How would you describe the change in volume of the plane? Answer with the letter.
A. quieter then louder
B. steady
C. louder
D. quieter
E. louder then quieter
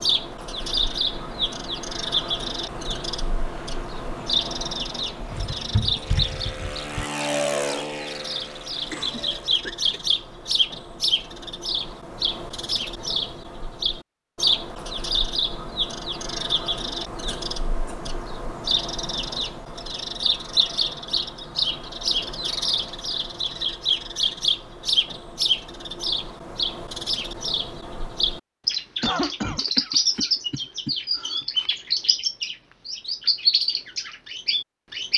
C.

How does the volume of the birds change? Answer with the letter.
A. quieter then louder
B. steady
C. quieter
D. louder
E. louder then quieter
B.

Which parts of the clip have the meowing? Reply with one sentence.
You can hear the meowing from 5.2 to 7.0 s.